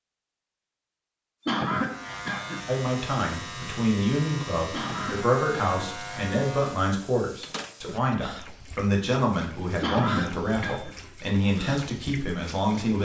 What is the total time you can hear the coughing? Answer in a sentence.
The coughing can be heard for 4 seconds in total.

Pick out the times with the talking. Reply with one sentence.
The talking can be heard from 2.6 to 13.0 s.